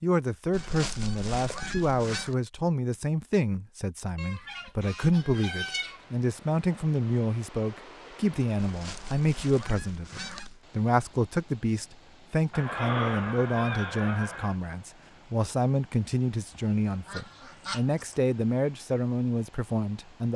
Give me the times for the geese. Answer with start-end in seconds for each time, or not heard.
0.5-2.4, 4.2-6.2, 8.6-10.6, 12.5-14.6, 16.5-18.1.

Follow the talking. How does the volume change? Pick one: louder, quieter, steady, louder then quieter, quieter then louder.
steady.